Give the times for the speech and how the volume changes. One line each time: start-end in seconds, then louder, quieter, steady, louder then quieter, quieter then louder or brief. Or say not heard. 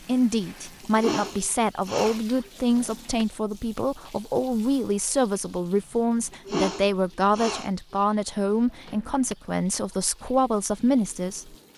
0.1-11.6 steady.